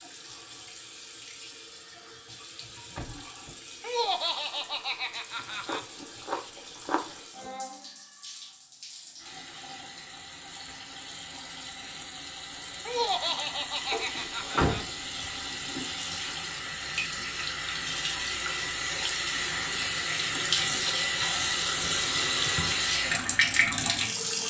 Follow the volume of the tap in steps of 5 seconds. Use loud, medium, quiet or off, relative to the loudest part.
quiet, quiet, quiet, medium, loud.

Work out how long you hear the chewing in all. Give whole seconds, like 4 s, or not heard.
2 s.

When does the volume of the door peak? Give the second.
15 s.